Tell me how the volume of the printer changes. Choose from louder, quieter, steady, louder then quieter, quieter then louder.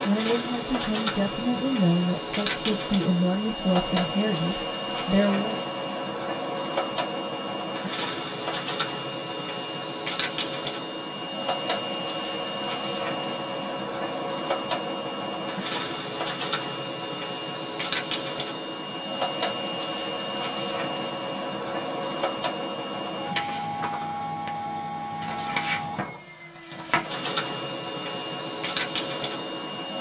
steady.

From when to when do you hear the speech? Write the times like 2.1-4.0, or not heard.
0.1-5.6.